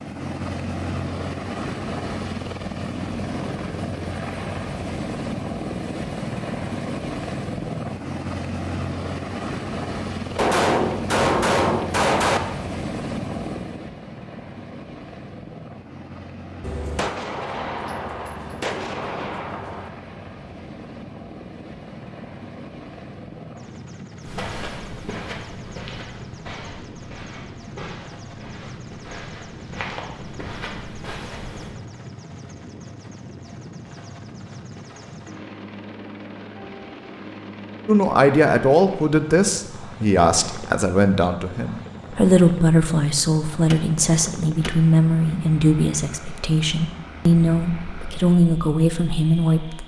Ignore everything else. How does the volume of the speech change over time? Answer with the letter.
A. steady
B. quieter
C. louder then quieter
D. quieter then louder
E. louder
A.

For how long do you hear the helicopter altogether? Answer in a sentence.
You can hear the helicopter for 50 seconds altogether.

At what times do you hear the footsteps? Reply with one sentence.
You can hear the footsteps from 24.2 to 31.8 s.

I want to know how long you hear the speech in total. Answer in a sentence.
You can hear the speech for 12 seconds altogether.